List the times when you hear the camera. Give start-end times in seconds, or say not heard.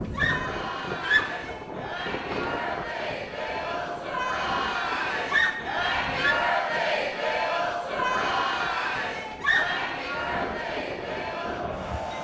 not heard.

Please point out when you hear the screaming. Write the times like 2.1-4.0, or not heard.
0.1-1.6, 5.2-6.4, 9.3-9.8.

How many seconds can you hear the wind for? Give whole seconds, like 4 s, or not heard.
12 s.